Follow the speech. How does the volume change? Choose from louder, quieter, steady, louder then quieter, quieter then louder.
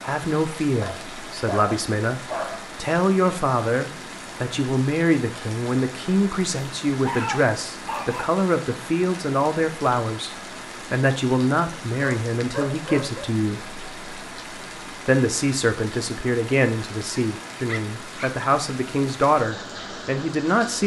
steady.